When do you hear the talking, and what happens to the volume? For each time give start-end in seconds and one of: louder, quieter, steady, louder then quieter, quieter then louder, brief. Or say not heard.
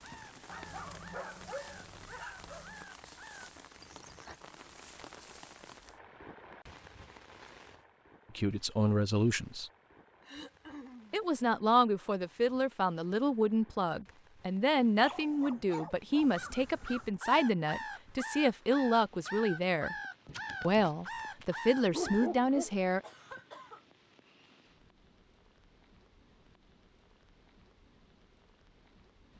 8.3-9.7 brief
11.1-19.9 steady
20.6-23.0 brief.